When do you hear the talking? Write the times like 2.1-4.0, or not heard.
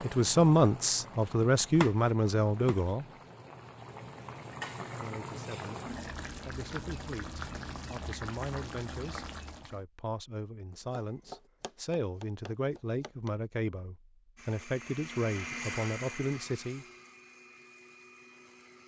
0.0-3.0, 4.8-5.8, 6.5-16.9.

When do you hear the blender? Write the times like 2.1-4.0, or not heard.
14.3-18.8.